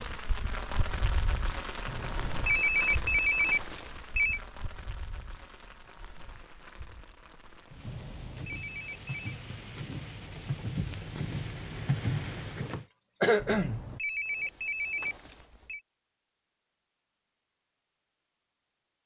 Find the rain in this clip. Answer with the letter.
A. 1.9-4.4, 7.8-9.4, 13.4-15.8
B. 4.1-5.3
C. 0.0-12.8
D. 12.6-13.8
C.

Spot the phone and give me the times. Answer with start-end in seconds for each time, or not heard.
1.9-4.4, 7.8-9.4, 13.4-15.8.